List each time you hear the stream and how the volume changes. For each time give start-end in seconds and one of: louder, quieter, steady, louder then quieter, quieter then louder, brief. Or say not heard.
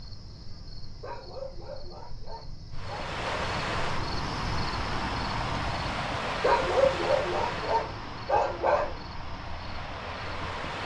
2.7-10.8 quieter.